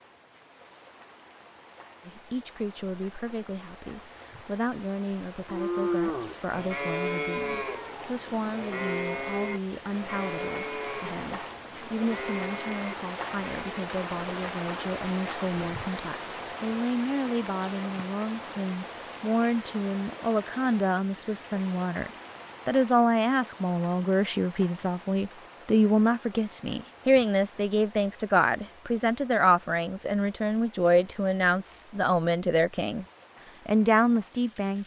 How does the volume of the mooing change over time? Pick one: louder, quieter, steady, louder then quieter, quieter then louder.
quieter.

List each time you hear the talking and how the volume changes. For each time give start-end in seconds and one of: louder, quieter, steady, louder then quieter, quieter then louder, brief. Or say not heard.
2.0-33.0 louder
33.6-34.8 brief.